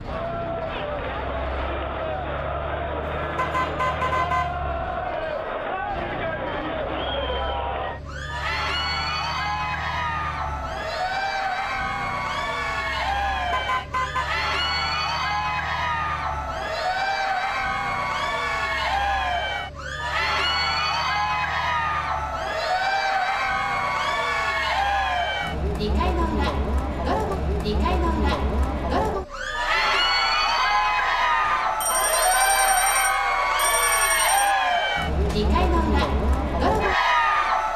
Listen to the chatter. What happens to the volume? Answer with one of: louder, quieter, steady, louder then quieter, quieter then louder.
louder.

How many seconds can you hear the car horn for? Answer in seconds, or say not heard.
5 s.